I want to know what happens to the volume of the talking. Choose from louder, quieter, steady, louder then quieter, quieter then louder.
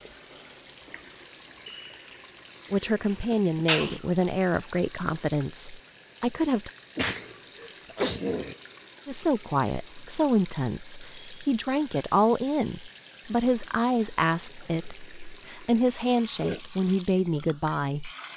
steady.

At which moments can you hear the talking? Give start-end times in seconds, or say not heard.
2.7-6.7, 9.1-18.3.